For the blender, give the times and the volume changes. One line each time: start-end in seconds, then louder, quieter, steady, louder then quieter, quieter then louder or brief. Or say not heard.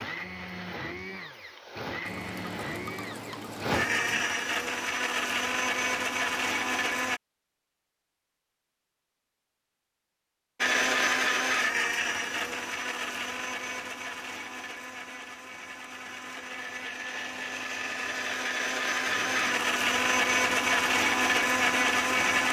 0.0-7.2 louder
10.6-22.4 quieter then louder.